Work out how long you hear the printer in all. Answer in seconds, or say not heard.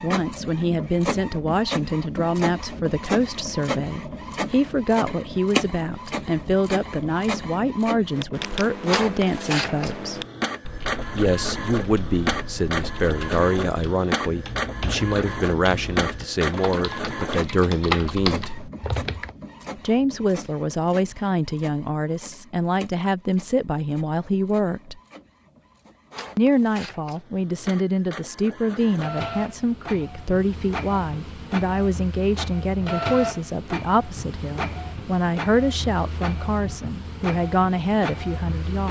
39 s.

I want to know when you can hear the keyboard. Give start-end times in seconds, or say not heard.
8.1-19.3.